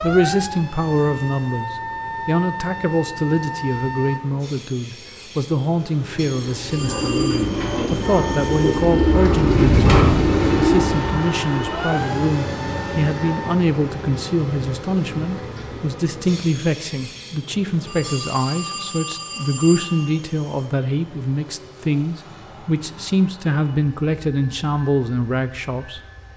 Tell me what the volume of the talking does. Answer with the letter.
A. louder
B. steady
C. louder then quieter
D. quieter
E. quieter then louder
B.